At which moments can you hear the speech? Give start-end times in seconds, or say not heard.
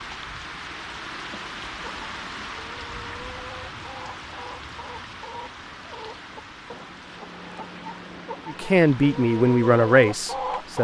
8.4-10.7.